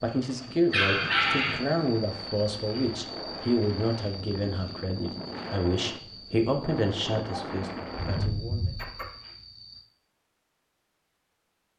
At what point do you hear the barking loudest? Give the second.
1 s.